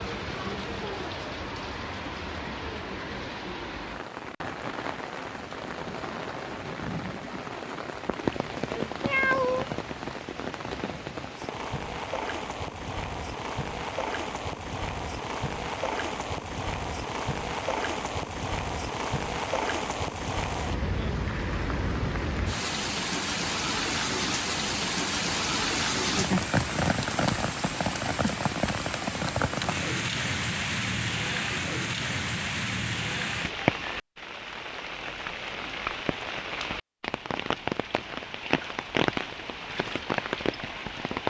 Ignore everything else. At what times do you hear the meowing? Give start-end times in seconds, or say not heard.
9.0-9.7.